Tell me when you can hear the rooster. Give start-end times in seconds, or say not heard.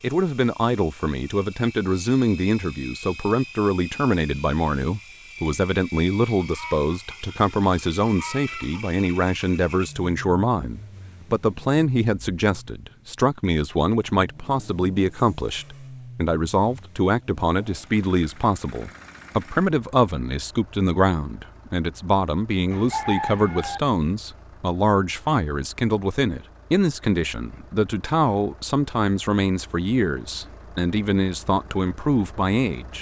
6.4-8.9, 22.7-23.8.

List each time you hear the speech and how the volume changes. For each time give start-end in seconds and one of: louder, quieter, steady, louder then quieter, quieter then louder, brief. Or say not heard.
0.0-32.9 steady.